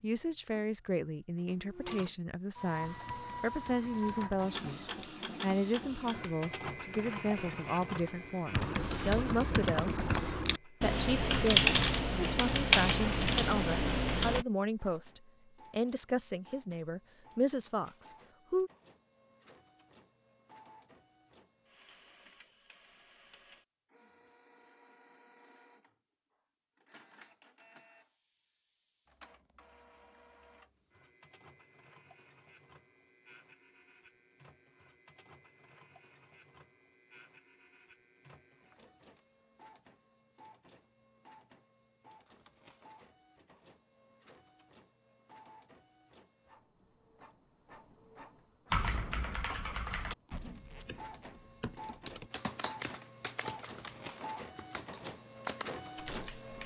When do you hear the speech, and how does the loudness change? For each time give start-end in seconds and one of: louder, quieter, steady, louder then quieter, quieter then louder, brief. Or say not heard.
0.0-9.9 steady
10.7-18.7 steady.